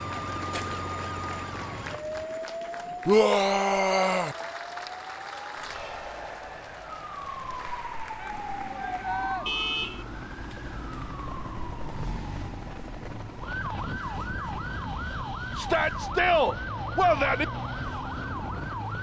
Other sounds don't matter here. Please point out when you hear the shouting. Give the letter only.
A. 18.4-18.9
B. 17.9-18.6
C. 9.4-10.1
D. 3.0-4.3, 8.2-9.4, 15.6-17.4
D.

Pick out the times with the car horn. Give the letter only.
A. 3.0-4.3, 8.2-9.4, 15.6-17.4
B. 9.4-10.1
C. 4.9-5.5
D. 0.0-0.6
B.